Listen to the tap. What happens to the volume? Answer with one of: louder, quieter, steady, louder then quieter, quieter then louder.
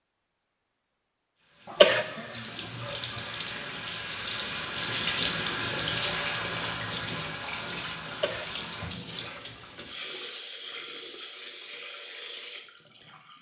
louder then quieter.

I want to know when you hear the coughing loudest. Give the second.
2 s.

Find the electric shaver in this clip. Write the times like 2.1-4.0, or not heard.
not heard.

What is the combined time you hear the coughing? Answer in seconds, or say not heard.
3 s.